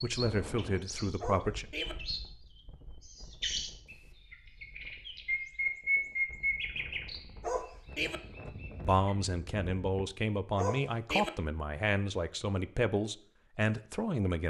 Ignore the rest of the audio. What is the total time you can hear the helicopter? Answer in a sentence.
You can't hear the helicopter here.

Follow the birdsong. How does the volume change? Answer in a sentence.
The loudness of the birdsong goes up, then down.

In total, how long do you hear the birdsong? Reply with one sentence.
You can hear the birdsong for 9 seconds altogether.